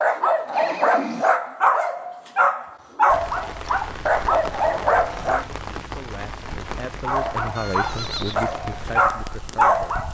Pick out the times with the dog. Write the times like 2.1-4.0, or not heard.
0.0-5.5, 7.0-10.0.